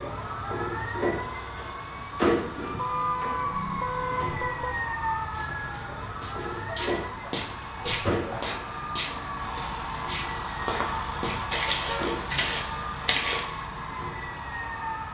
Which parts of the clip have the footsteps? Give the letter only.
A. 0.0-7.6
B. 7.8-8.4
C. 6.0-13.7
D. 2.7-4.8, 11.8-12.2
C.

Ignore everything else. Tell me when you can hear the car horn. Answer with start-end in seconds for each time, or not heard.
2.7-4.8, 11.8-12.2.